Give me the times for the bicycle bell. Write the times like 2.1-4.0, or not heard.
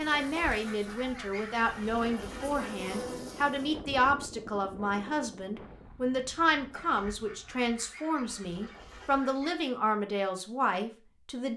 not heard.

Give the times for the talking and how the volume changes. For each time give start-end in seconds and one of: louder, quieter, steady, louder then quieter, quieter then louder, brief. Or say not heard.
0.0-11.5 steady.